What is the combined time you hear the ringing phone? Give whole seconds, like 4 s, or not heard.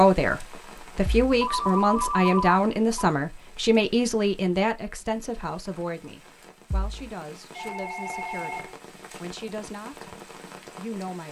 3 s.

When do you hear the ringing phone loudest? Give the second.
2 s.